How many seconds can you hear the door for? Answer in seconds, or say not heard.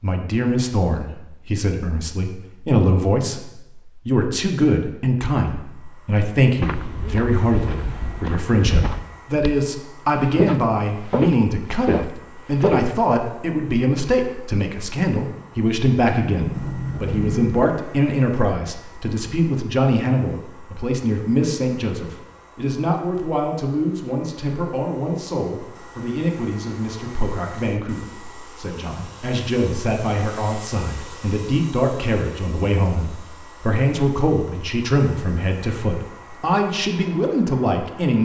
2 s.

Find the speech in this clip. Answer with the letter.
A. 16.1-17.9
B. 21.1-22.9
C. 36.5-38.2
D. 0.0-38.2
D.